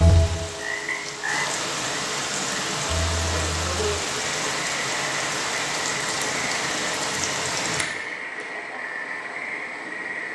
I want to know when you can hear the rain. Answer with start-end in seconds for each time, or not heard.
0.0-7.8.